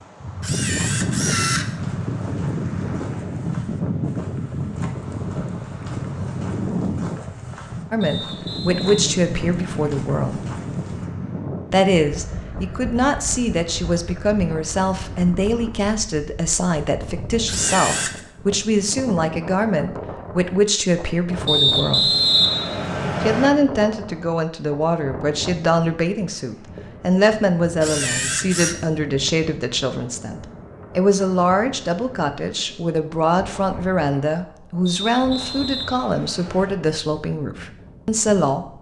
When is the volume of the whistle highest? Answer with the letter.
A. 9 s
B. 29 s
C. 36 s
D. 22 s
D.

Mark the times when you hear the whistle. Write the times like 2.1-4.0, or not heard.
8.0-9.9, 21.4-23.5, 34.9-36.8.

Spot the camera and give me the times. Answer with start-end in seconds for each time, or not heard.
0.4-1.6, 17.4-18.2, 27.8-28.8.